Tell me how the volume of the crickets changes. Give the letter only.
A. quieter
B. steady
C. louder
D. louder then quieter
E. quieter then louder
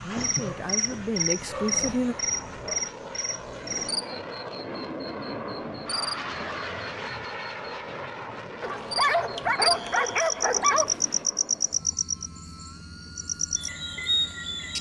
E.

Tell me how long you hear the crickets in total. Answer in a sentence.
The crickets can be heard for 15 seconds in total.